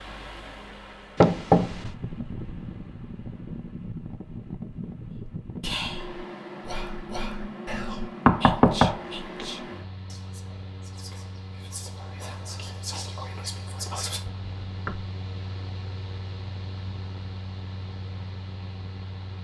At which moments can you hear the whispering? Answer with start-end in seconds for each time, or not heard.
5.1-14.2.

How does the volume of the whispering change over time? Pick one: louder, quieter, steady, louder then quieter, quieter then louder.
quieter then louder.